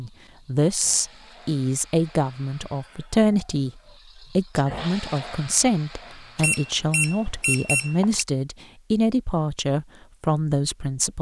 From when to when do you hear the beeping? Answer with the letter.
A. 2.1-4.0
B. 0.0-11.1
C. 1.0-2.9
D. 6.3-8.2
D.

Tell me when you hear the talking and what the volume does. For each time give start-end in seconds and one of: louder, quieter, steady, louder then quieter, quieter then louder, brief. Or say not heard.
0.0-11.1 steady.